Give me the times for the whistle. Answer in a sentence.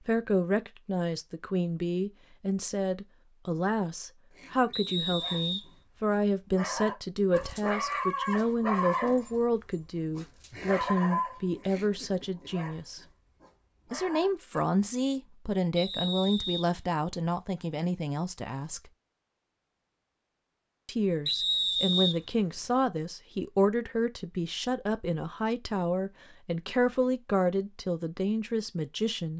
You can hear the whistle from 4.7 to 5.7 s, from 15.8 to 16.6 s and from 21.2 to 22.6 s.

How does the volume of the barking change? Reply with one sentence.
The volume of the barking goes up, then down.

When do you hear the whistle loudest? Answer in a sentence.
The volume of the whistle peaks at 22 seconds.